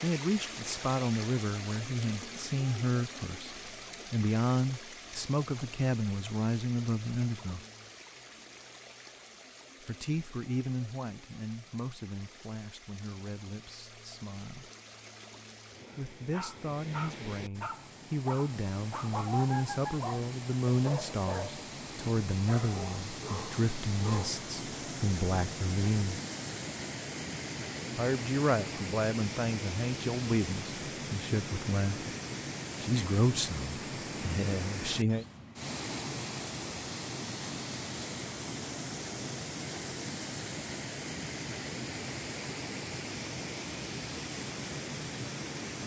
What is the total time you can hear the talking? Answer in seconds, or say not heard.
29 s.